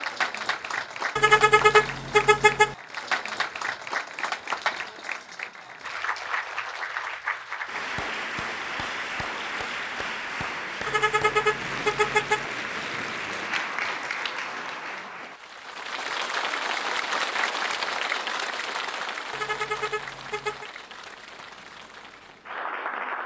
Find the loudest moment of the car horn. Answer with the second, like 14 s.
2 s.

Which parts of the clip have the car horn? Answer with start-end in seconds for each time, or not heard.
1.1-2.8, 10.8-12.4, 19.3-20.7.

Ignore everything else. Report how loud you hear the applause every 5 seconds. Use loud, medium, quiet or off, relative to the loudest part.
loud, loud, loud, loud, medium.